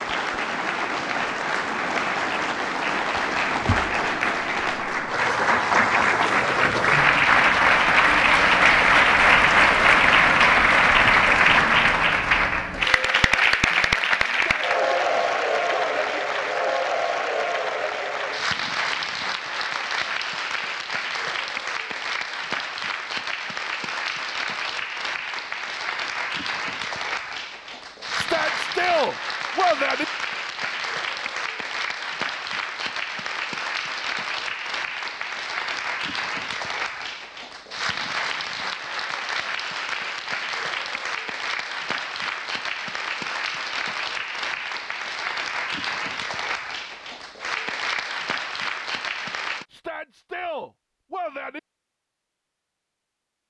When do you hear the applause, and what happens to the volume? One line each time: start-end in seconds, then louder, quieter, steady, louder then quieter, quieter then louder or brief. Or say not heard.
0.0-49.6 quieter.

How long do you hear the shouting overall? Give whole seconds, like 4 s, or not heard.
6 s.